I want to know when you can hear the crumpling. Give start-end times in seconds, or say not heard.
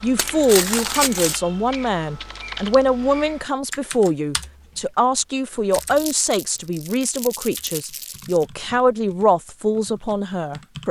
0.1-1.4, 5.7-8.4.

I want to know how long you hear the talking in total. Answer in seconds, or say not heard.
11 s.